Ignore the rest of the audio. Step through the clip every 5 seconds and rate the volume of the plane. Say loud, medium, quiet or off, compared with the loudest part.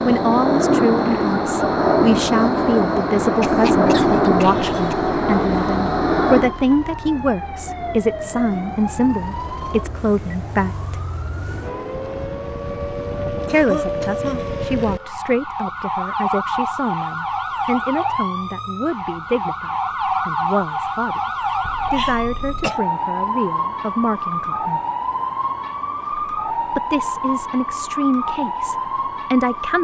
loud, medium, quiet, off, off, off.